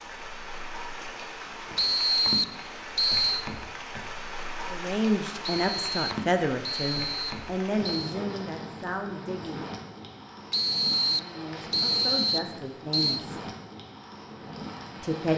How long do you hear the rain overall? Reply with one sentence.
The rain can be heard for 15 seconds in total.